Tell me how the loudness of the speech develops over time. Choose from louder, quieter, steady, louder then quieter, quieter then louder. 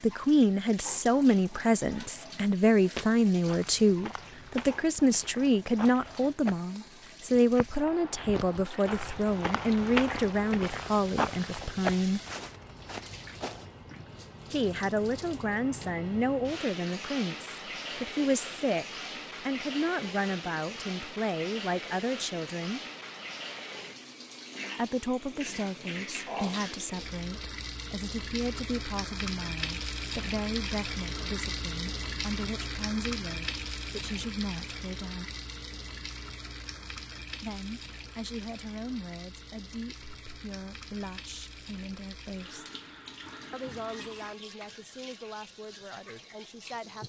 quieter.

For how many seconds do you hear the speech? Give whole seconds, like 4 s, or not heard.
40 s.